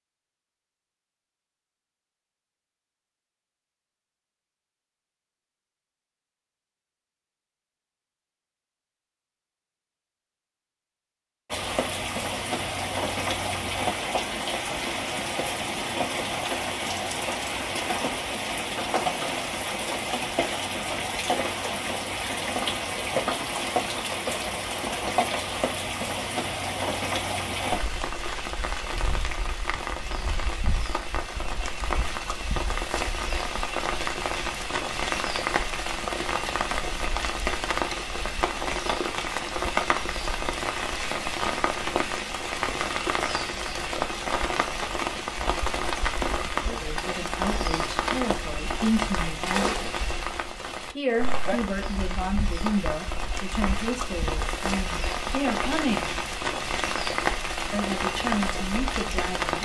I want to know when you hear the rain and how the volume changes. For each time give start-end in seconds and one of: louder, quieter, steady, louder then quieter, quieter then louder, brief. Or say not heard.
11.5-59.6 steady.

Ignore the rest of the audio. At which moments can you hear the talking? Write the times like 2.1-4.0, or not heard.
46.6-50.0, 51.0-56.1, 57.7-59.6.